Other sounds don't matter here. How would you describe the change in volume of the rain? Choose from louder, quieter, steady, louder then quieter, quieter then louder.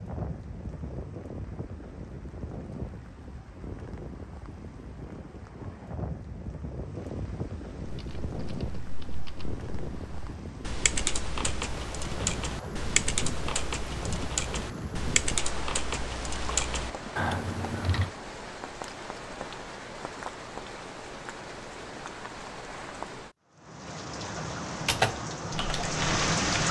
louder.